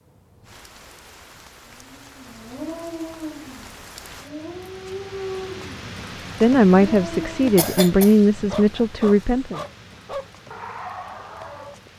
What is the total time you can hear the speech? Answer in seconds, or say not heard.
3 s.